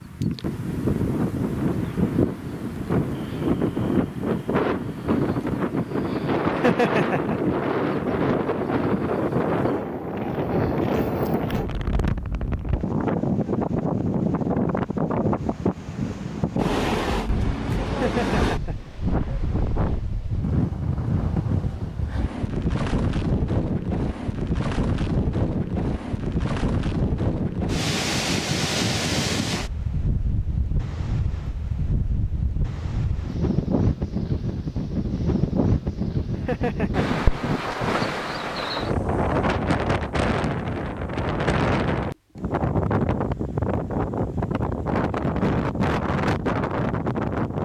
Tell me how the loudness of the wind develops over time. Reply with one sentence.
The loudness of the wind stays about the same.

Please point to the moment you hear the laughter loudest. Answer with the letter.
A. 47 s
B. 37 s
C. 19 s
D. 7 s
D.